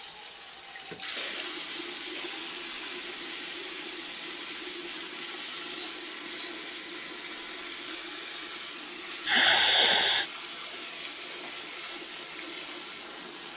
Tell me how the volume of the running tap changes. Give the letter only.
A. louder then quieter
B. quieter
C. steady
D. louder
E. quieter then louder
C.